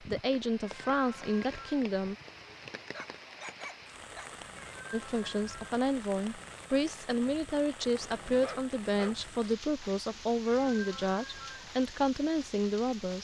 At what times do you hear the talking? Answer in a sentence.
You can hear the talking from 0.0 to 2.1 s and from 4.9 to 13.1 s.